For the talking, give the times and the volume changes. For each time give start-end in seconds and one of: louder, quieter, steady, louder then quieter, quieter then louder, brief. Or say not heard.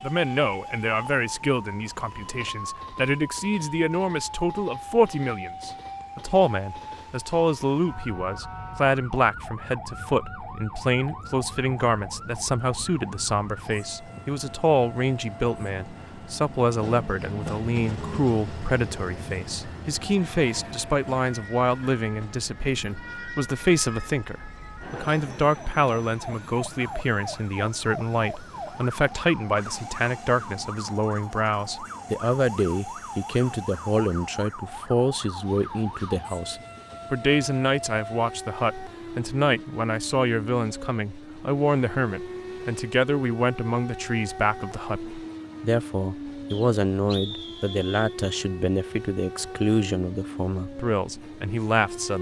0.0-52.1 steady.